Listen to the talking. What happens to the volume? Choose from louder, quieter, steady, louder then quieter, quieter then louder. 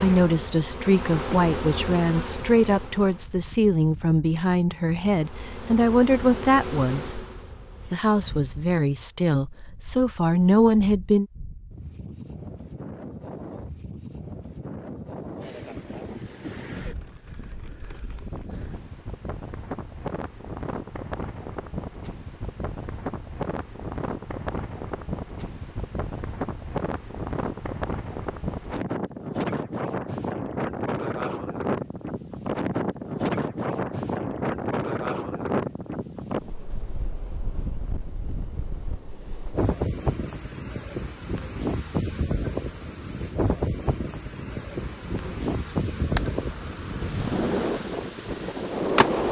steady.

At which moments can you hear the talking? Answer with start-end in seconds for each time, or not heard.
0.0-7.2, 7.9-11.2.